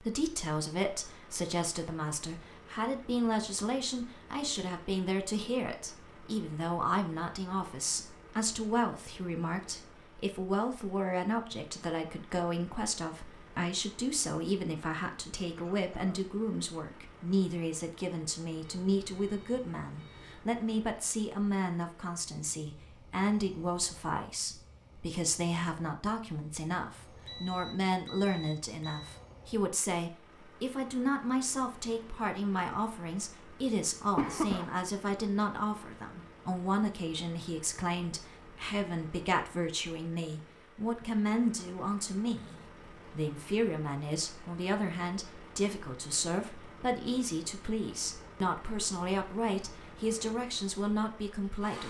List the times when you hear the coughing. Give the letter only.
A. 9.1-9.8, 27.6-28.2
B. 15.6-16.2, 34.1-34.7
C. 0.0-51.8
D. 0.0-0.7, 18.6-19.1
B.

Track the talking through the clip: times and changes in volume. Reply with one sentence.
You can hear the talking from 0.0 to 51.8 s, at a steady volume.